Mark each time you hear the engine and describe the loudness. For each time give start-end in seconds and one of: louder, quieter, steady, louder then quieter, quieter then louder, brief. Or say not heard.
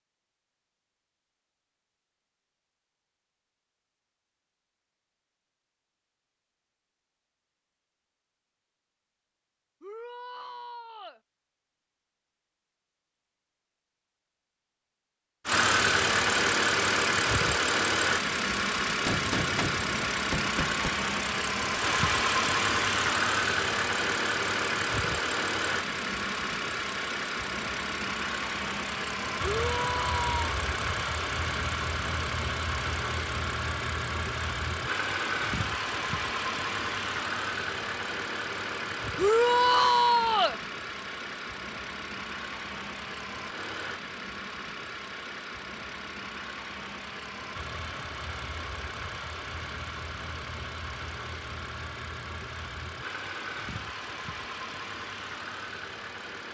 15.4-56.4 quieter.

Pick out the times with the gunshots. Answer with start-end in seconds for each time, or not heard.
19.1-20.9.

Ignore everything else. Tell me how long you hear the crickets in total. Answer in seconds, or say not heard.
not heard.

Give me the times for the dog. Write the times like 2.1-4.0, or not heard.
not heard.